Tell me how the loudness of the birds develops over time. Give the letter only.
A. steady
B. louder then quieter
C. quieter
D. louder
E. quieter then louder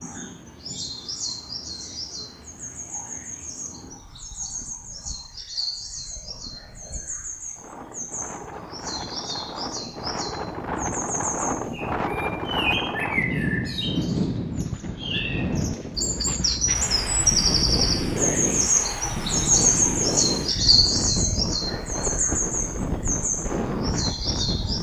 D.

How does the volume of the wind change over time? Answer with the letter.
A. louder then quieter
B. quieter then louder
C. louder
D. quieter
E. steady
C.